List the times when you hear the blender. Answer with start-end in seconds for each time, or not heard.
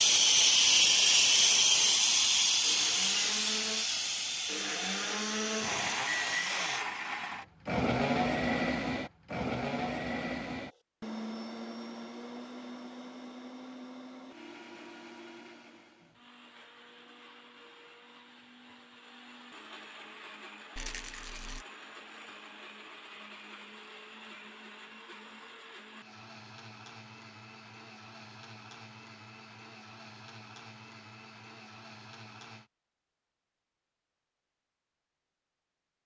0.0-32.7.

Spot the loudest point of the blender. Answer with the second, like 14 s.
8 s.